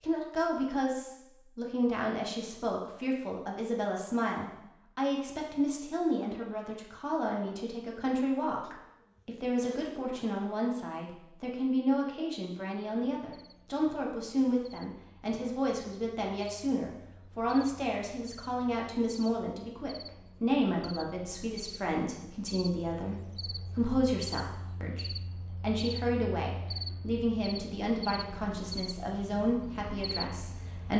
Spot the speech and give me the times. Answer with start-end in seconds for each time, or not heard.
0.0-30.9.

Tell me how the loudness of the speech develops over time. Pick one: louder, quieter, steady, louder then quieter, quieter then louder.
steady.